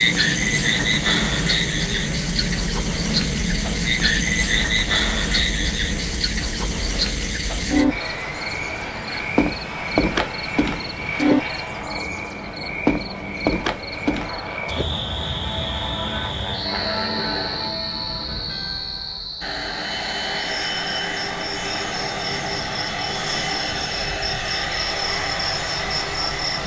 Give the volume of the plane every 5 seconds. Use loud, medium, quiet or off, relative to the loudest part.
loud, medium, medium, medium, loud, loud.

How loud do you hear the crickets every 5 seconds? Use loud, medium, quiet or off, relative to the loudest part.
loud, loud, loud, medium, medium, medium.